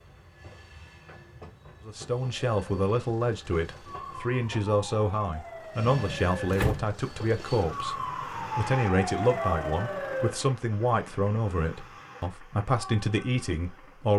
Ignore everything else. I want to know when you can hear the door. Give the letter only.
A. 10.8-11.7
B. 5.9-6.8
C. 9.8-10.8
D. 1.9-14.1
B.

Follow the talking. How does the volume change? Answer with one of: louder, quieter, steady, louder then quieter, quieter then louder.
steady.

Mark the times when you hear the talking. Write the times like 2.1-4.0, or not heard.
1.9-14.1.